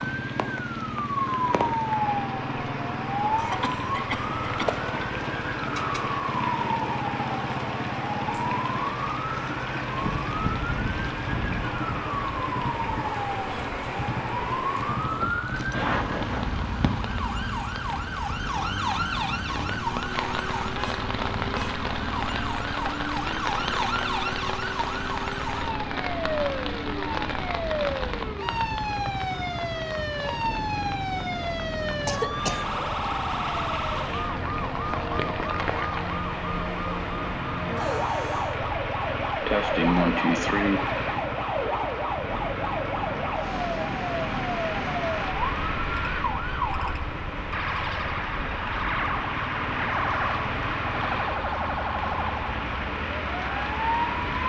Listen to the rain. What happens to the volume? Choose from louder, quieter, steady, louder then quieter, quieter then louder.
steady.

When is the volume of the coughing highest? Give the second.
40 s.